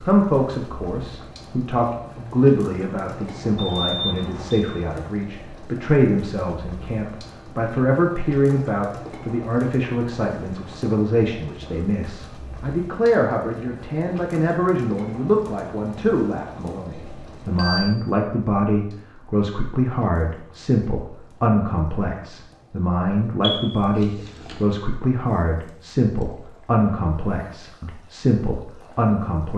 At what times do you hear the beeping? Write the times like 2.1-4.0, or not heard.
3.5-4.7, 17.1-17.9, 23.4-24.6.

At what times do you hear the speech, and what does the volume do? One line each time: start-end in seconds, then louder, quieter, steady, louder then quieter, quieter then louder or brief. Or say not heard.
0.1-29.5 steady.